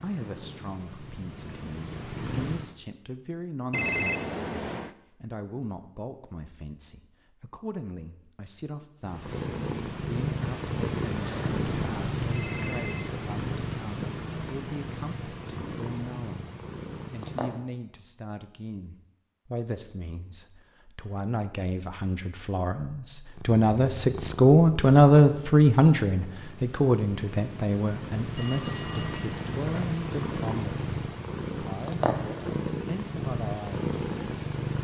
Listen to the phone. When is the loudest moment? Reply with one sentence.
The loudest moment of the phone is at 4 seconds.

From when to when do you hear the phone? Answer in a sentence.
You can hear the phone from 3.7 to 4.9 s, from 11.7 to 13.1 s and from 28.4 to 29.9 s.